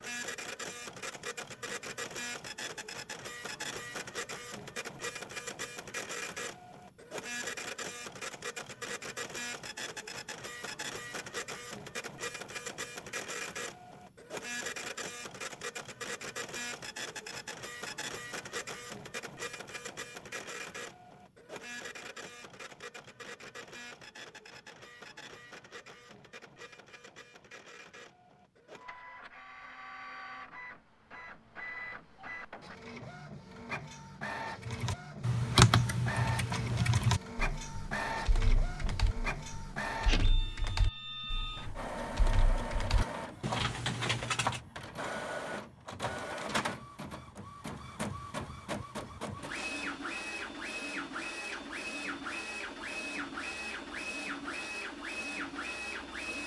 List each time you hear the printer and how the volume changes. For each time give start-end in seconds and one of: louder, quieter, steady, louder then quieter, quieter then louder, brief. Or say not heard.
0.0-56.4 quieter then louder.